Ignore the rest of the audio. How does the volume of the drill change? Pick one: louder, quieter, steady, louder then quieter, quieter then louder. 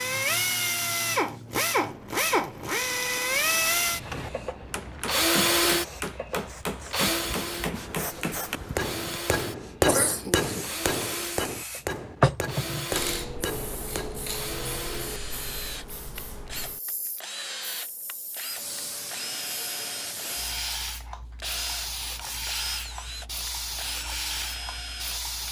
quieter.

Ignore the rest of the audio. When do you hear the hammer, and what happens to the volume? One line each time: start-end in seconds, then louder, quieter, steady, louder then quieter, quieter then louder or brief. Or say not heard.
3.9-14.2 louder then quieter.